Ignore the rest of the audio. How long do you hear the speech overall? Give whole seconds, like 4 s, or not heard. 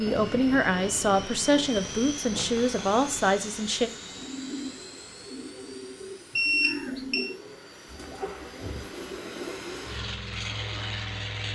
4 s.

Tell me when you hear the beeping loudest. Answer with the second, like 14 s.
7 s.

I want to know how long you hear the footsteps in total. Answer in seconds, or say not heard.
not heard.